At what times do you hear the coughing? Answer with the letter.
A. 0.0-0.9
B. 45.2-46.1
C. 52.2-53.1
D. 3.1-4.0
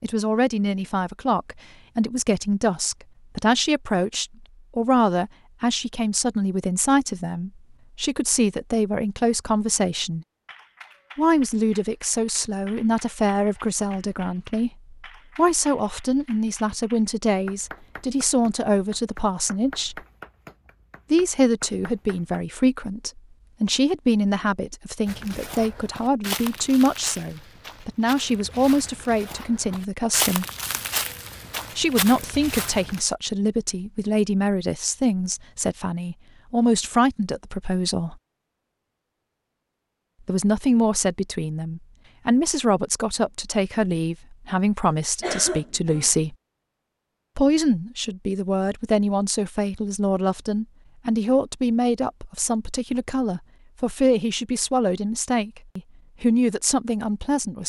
B.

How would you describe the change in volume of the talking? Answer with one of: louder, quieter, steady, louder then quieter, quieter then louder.
steady.